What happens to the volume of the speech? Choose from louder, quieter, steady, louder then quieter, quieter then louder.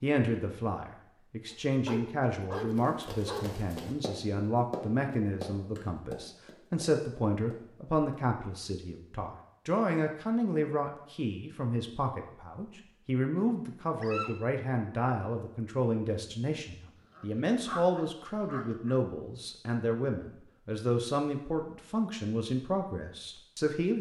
steady.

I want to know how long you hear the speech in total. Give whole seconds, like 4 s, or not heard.
24 s.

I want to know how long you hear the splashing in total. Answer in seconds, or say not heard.
not heard.